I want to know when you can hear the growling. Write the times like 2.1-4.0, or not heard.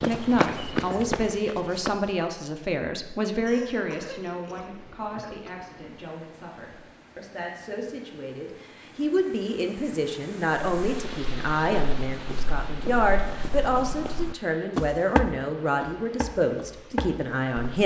not heard.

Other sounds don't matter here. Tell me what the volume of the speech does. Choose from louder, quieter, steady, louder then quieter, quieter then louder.
quieter then louder.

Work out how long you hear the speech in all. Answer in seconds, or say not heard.
18 s.